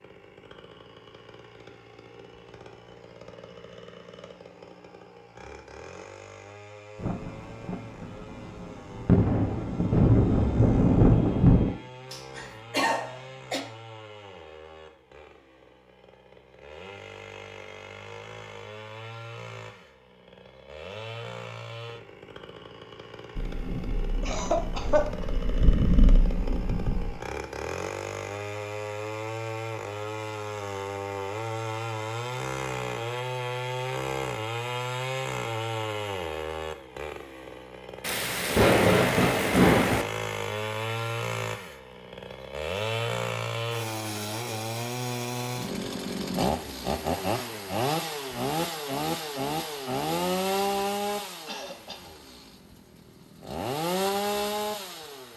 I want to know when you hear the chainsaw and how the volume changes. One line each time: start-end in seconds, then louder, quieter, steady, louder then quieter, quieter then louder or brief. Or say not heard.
0.0-55.3 louder.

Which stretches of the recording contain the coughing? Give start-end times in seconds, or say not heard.
11.7-13.6, 24.2-25.1, 51.5-52.1.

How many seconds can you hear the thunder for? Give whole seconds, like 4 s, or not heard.
11 s.